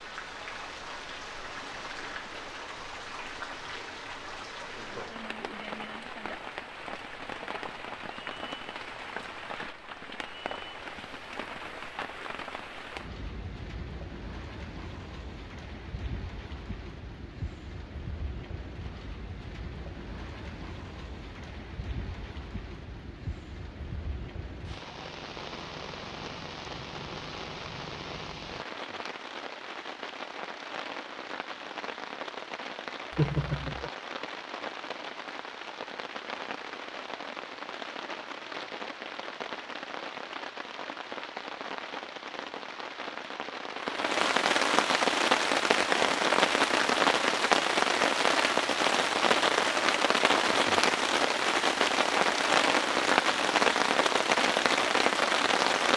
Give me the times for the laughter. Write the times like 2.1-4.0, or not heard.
33.1-33.9.